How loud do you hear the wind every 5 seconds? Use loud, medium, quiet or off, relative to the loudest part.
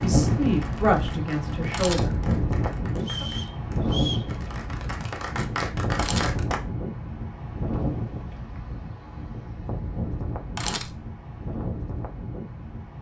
loud, medium, medium.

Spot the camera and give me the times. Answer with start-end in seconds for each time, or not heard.
1.6-2.2, 5.8-6.4, 10.3-11.1.